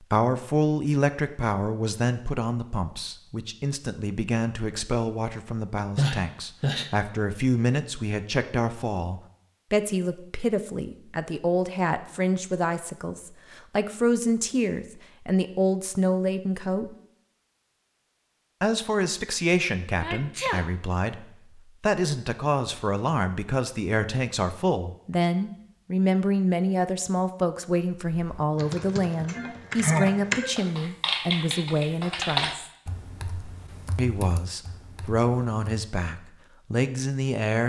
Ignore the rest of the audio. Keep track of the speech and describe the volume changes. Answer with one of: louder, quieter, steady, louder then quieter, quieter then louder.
steady.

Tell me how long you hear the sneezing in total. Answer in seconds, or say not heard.
3 s.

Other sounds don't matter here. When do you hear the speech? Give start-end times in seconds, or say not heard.
0.1-16.9, 18.6-32.7, 34.0-37.6.